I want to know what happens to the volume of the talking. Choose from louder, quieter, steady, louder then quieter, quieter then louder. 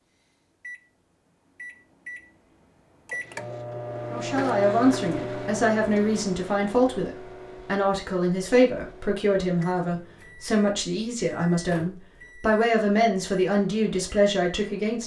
steady.